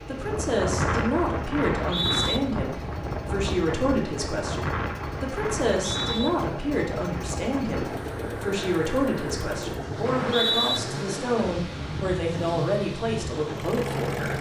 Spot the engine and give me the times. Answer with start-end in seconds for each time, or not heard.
0.0-14.3.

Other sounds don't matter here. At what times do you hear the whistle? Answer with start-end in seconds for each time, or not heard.
1.6-2.4, 5.8-6.3, 10.1-10.8.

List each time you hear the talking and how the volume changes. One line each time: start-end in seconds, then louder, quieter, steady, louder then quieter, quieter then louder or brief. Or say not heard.
0.1-14.3 steady.